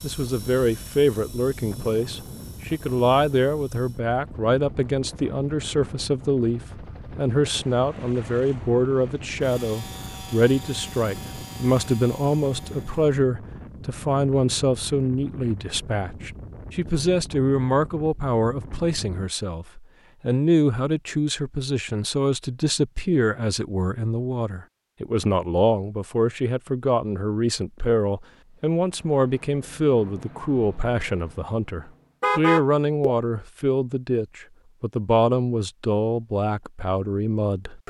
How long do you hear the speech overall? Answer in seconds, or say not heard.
38 s.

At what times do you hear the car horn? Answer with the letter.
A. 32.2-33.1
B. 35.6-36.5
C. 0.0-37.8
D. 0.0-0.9
A.